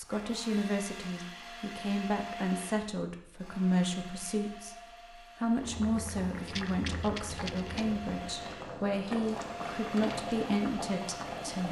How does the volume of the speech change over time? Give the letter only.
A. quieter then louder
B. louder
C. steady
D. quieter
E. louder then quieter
C.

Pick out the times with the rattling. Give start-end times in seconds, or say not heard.
6.5-7.8.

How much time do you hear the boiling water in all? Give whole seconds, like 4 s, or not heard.
6 s.